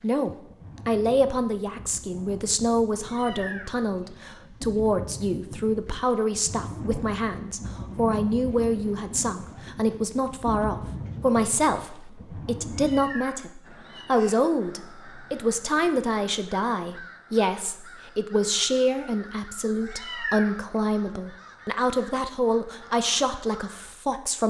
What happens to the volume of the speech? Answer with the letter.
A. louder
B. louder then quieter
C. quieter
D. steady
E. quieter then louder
D.